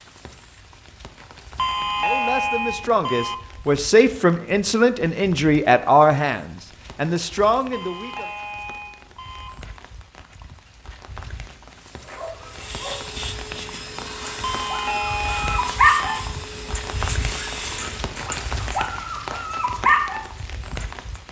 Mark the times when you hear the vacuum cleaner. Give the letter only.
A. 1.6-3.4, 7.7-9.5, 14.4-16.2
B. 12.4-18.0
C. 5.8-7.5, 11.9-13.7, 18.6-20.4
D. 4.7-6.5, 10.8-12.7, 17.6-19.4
B.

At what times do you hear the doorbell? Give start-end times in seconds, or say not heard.
1.6-3.4, 7.7-9.5, 14.4-16.2.